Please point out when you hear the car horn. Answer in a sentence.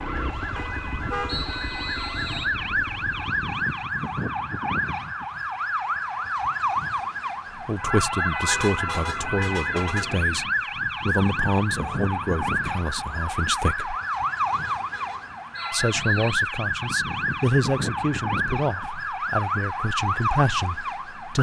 The car horn can be heard from 0.6 to 1.5 s, from 8.3 to 10.4 s and from 14.4 to 15.4 s.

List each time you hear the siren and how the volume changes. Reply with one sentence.
You can hear the siren from 0.0 to 21.3 s, at a steady volume.